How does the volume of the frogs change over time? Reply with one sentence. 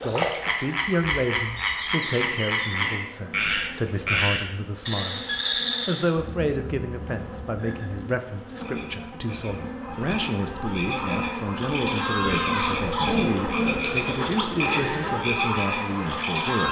The volume of the frogs goes down, then up.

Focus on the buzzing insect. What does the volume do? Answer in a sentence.
The volume of the buzzing insect goes up.